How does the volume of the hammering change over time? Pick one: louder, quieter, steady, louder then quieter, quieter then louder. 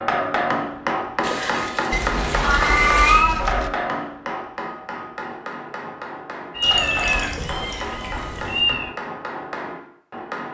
quieter.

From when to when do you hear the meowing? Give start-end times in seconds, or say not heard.
1.9-3.7, 6.5-8.9.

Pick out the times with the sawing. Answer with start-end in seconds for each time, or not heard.
not heard.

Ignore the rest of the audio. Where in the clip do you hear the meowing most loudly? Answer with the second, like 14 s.
3 s.